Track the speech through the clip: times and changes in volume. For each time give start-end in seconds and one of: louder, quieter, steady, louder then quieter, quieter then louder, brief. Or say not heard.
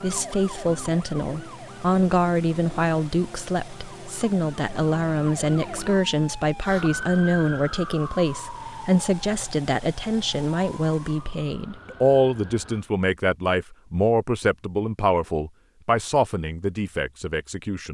0.0-17.8 steady.